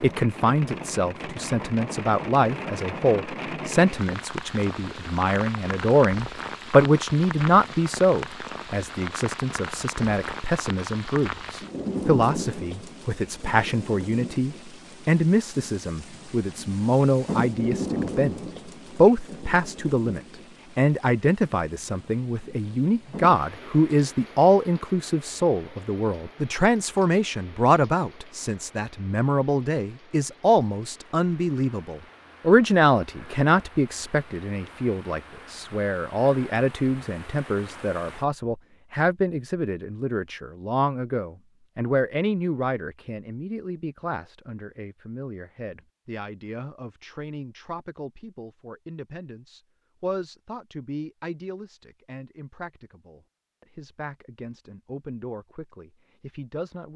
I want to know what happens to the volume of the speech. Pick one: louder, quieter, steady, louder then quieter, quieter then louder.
quieter.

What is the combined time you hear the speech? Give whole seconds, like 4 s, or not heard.
57 s.